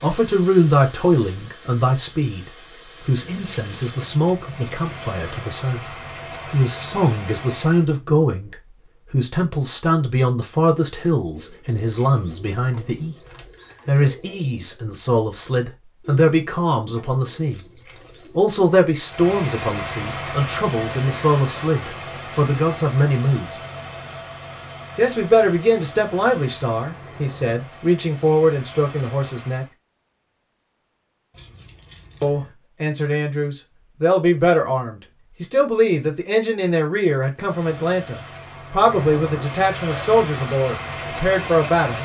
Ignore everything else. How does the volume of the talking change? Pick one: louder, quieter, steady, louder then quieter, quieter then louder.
steady.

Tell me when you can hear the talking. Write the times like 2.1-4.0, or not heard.
0.0-13.2, 13.8-17.6, 18.4-23.6, 24.9-29.6, 32.2-42.0.